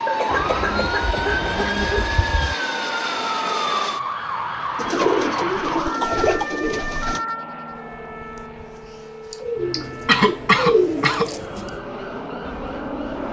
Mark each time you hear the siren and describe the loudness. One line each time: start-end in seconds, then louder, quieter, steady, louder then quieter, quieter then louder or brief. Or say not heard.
0.0-13.2 quieter.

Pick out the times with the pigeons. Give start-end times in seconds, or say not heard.
0.3-2.5, 4.8-7.2, 9.4-11.8.